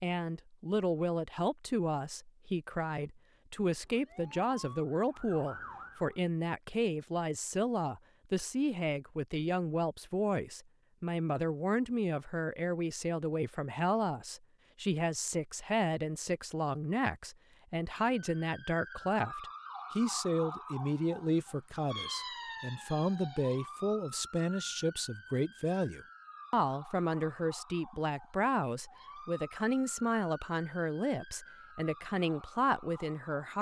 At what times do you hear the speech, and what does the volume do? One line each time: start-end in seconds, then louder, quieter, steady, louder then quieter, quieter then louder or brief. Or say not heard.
0.0-33.5 steady.